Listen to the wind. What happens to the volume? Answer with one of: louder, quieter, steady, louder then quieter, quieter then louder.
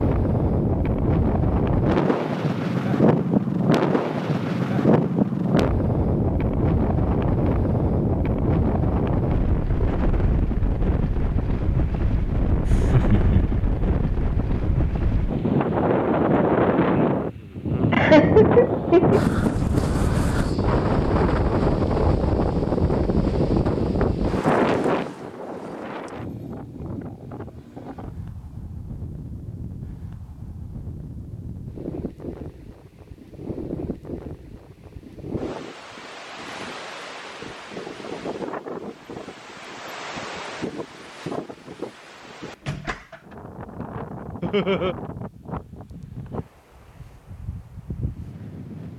quieter.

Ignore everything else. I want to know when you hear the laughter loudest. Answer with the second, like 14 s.
18 s.